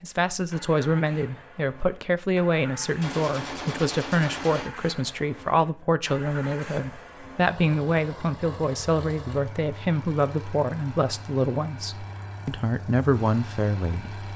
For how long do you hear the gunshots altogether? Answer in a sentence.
You can hear the gunshots for 2 seconds altogether.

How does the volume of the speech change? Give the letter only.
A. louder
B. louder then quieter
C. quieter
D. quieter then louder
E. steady
E.